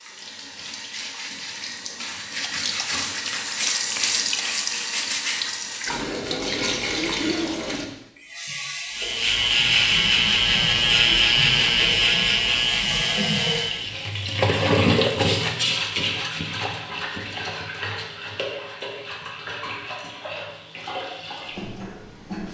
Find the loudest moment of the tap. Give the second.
15 s.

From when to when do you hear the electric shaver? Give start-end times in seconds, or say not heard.
8.8-14.0.